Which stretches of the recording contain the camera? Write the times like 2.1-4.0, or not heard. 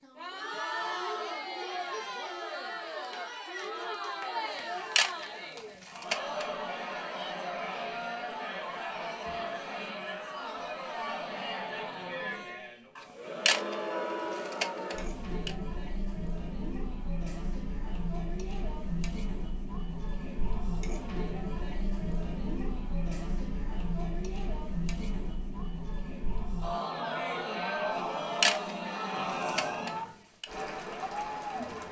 4.5-6.5, 12.9-15.5, 27.9-30.4.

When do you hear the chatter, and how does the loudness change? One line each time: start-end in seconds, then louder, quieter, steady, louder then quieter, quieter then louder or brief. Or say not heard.
0.0-31.8 steady.